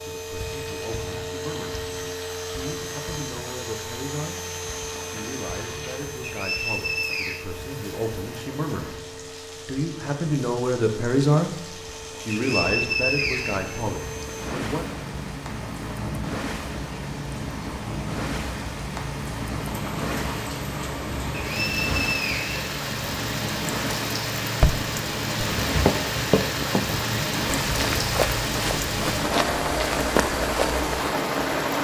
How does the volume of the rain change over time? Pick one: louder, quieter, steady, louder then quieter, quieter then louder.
louder.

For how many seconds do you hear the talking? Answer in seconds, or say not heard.
12 s.